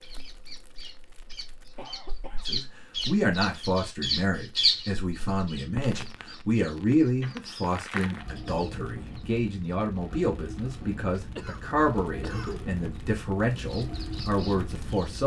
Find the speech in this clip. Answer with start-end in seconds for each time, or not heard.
2.5-15.2.